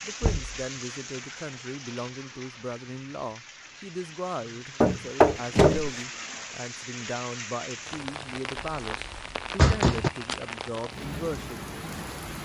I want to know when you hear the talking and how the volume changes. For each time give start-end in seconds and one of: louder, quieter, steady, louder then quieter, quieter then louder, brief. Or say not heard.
0.0-11.6 steady.